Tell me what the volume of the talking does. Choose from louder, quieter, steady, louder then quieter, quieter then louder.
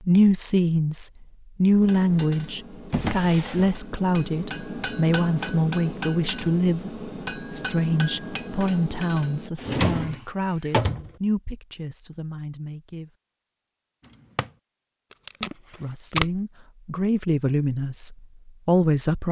quieter then louder.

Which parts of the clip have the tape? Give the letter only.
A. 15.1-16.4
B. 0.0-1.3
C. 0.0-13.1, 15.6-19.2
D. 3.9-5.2
A.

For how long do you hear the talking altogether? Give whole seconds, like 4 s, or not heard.
17 s.